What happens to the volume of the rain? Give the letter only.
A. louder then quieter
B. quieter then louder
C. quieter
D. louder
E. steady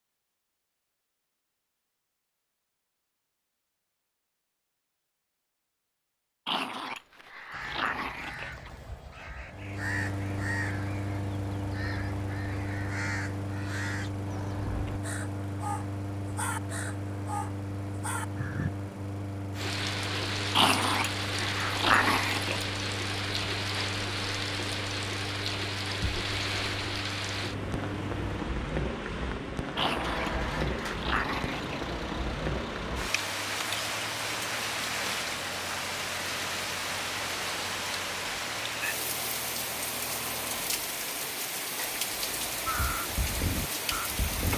E.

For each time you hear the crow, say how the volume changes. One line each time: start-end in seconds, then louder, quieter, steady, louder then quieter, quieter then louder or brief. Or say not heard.
7.5-18.7 steady
42.6-44.5 brief.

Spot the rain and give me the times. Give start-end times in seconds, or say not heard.
19.5-44.5.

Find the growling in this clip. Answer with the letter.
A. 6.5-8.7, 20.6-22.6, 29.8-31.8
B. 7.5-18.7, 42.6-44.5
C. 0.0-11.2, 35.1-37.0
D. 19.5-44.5
A.